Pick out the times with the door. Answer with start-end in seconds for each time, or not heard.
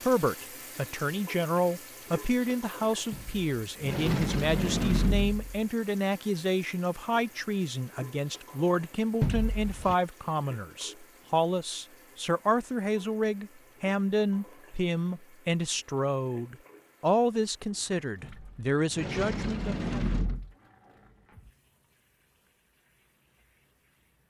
3.1-5.6, 9.2-9.9, 18.2-20.6.